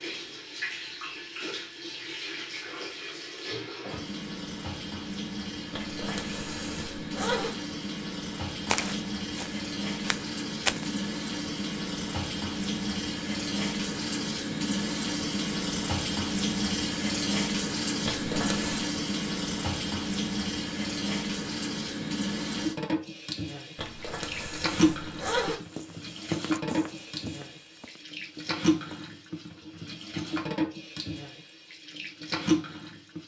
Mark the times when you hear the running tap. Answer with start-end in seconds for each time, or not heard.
0.0-33.2.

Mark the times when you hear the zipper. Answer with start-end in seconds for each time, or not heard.
5.7-7.5, 18.1-18.9, 23.8-25.6.